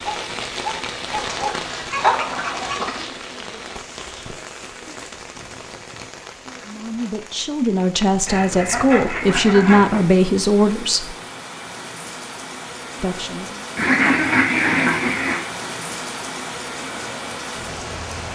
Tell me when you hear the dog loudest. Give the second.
2 s.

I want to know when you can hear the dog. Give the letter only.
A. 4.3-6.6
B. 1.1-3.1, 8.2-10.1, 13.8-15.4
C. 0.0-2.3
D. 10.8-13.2
C.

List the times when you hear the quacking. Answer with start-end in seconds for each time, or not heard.
1.1-3.1, 8.2-10.1, 13.8-15.4.